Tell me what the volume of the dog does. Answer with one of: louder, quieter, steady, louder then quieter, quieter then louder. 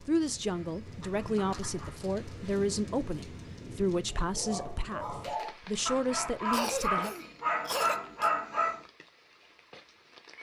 louder.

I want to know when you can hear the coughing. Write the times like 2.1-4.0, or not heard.
6.5-8.3.